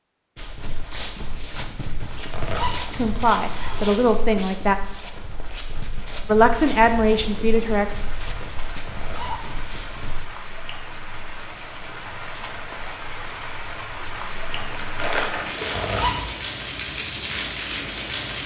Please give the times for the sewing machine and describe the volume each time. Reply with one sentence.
You can't hear the sewing machine here.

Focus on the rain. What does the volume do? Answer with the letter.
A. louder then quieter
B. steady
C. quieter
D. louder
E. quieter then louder
D.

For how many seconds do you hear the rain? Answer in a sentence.
The rain can be heard for 12 seconds in total.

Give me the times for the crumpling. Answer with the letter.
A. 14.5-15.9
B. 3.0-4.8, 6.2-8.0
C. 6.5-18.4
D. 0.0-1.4
A.